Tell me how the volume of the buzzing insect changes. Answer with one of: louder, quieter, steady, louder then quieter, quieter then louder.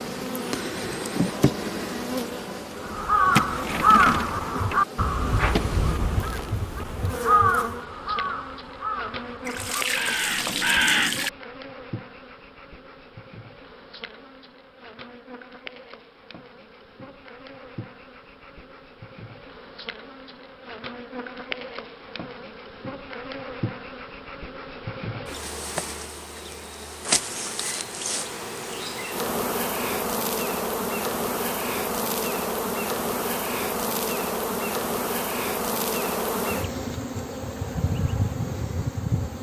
quieter then louder.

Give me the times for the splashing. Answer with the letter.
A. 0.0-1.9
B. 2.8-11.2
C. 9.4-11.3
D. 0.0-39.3
C.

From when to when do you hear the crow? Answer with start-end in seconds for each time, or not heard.
2.8-11.2.